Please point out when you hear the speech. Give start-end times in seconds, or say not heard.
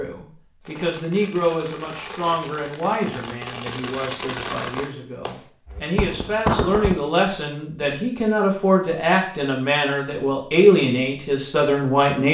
0.0-12.2.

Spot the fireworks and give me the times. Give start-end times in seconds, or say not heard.
0.6-7.0.